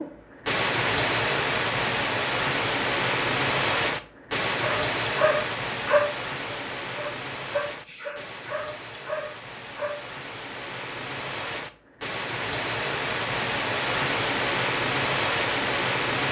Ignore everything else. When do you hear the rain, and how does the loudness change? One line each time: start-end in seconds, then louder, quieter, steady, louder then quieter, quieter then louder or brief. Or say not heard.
0.0-16.2 quieter then louder.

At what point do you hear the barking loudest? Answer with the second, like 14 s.
6 s.